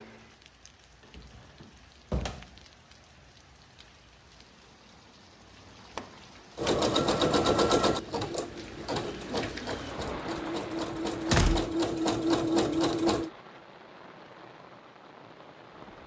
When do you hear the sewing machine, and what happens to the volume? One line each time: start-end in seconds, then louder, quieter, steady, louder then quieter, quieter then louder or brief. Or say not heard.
6.5-13.3 quieter then louder.